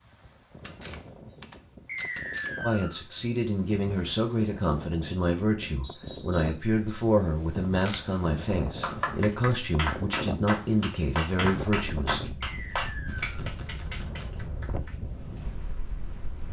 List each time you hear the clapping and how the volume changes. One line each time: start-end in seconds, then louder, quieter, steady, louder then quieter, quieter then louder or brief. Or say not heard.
8.8-15.0 quieter.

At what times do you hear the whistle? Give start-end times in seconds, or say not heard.
1.9-3.0, 5.8-6.7, 12.4-13.3.